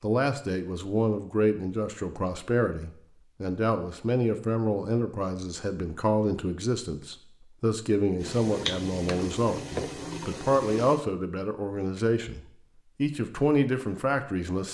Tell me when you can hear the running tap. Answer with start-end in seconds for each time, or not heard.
8.2-11.0.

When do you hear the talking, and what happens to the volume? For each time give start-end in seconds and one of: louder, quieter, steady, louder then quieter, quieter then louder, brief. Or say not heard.
0.0-14.6 steady.